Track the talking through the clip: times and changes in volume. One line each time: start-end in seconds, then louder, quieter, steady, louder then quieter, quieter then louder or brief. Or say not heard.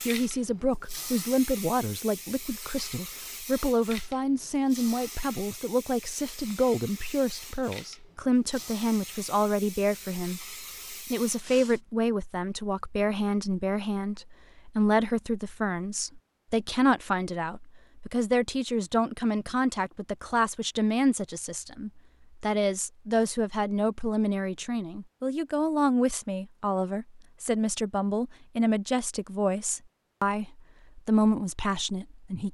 0.1-32.4 steady.